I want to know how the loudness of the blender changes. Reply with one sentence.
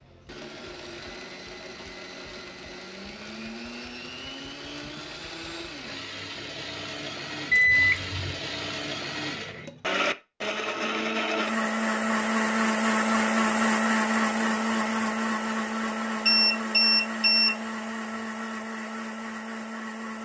The loudness of the blender goes up, then down.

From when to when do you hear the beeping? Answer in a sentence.
You can hear the beeping from 7.5 to 8.4 s and from 16.2 to 17.6 s.